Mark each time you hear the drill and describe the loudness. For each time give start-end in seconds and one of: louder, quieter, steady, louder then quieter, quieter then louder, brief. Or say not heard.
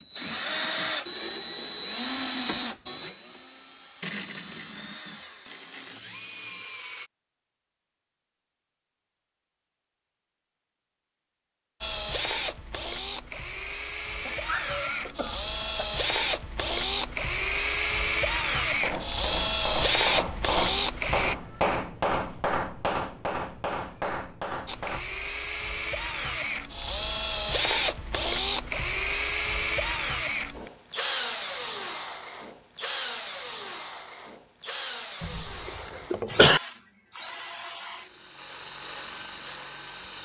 0.0-7.1 quieter
11.8-21.4 louder
24.6-40.2 quieter.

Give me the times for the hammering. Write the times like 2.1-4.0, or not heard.
18.6-25.1.